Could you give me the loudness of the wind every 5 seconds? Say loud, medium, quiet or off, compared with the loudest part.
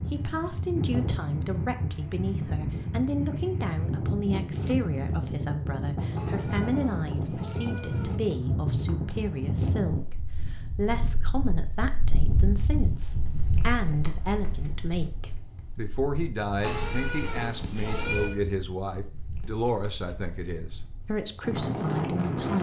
loud, loud, medium, quiet, loud.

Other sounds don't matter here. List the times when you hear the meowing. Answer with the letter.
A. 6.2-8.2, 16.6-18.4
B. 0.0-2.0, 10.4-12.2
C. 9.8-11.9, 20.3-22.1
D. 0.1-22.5
A.